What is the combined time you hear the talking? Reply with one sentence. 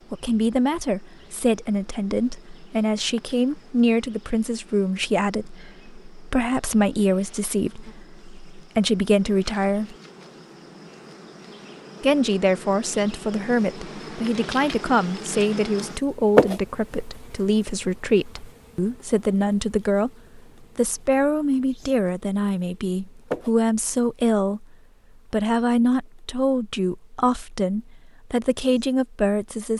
The talking can be heard for 27 seconds in total.